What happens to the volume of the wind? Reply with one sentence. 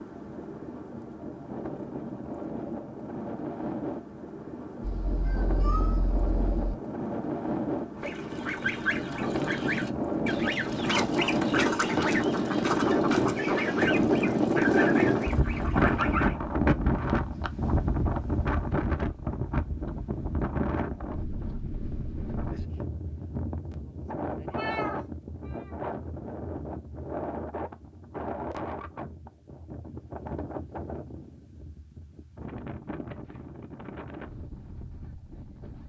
The loudness of the wind goes up, then down.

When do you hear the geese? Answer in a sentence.
You can hear the geese from 8.0 to 16.4 s.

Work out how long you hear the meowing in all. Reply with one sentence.
The meowing can be heard for 3 seconds in total.